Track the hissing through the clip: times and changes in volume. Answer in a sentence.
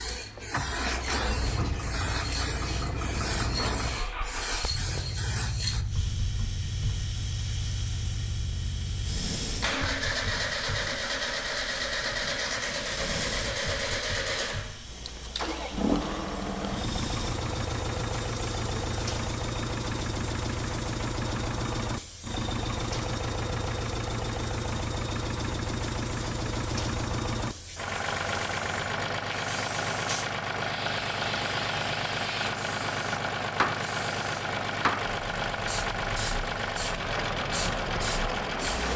You can hear the hissing from 0.0 to 38.9 s, getting quieter then louder.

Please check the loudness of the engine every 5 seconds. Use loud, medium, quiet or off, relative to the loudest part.
medium, medium, loud, loud, loud, loud, loud, loud.